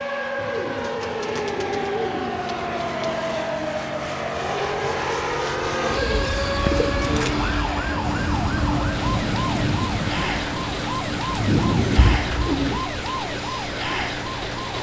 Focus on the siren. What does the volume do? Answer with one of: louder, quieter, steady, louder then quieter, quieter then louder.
steady.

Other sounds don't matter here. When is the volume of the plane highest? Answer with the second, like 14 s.
7 s.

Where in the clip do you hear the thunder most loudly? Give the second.
12 s.